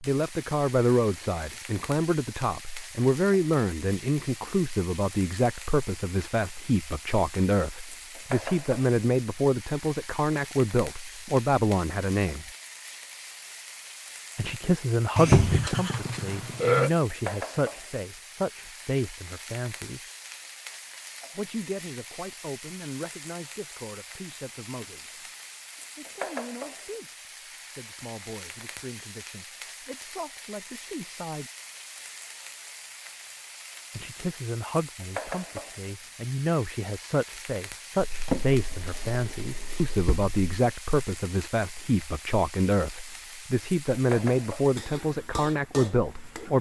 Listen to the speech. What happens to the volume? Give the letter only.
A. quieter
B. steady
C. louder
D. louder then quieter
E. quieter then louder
E.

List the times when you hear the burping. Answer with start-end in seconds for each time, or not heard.
15.2-16.9.